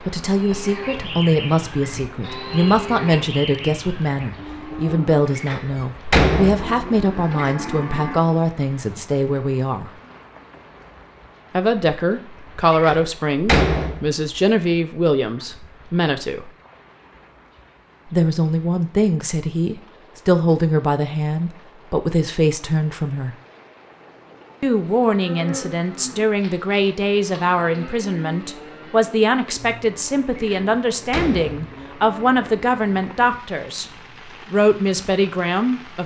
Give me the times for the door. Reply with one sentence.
The door can be heard from 5.3 to 7.5 s, from 12.7 to 14.1 s and from 30.4 to 31.6 s.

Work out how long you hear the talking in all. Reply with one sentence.
The talking can be heard for 31 seconds in total.